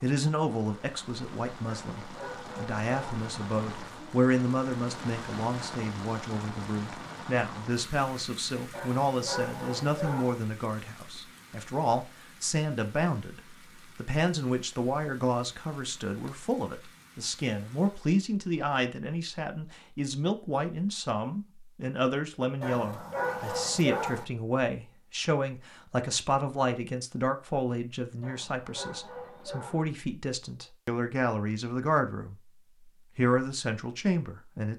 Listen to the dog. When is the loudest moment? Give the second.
24 s.